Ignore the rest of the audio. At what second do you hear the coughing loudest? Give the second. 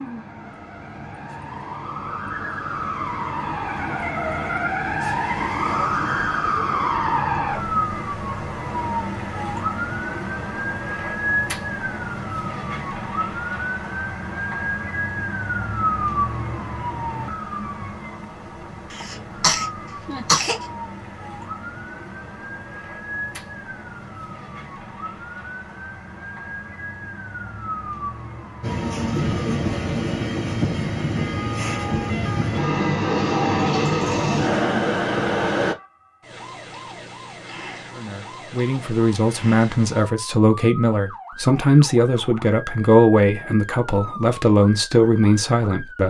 20 s.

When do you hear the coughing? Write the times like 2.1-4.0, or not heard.
18.9-20.6.